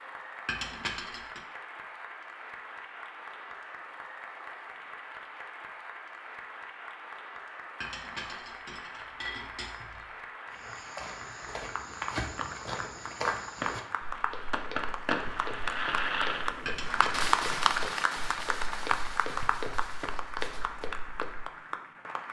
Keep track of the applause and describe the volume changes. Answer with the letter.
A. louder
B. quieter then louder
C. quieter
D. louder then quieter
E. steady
A.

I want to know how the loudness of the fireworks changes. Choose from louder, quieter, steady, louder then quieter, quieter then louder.
louder then quieter.